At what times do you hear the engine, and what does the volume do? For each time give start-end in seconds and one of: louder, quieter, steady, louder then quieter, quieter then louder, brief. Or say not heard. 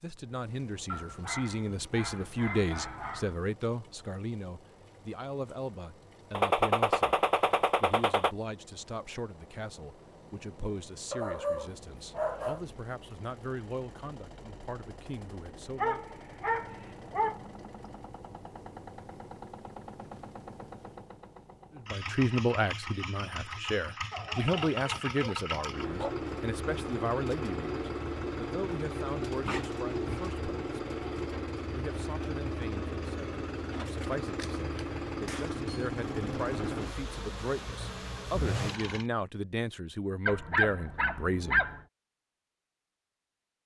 0.0-39.1 louder.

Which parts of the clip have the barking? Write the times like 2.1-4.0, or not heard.
0.8-3.4, 11.1-12.7, 15.8-17.4, 24.1-26.1, 29.4-30.4, 40.2-41.8.